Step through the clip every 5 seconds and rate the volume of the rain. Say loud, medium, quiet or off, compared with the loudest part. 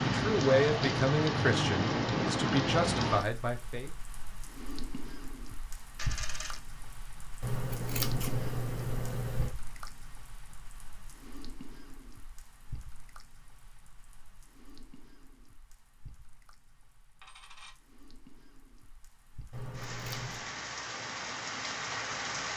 loud, quiet, quiet, quiet, medium.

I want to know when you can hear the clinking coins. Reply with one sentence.
You can hear the clinking coins from 6.0 to 6.6 s and from 17.2 to 17.8 s.